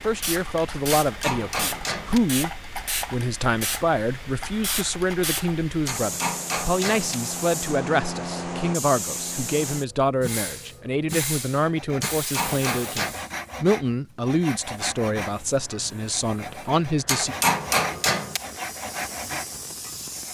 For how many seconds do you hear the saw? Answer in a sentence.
The saw can be heard for 9 seconds in total.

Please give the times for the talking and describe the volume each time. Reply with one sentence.
You can hear the talking from 0.0 to 17.4 s, at a steady volume.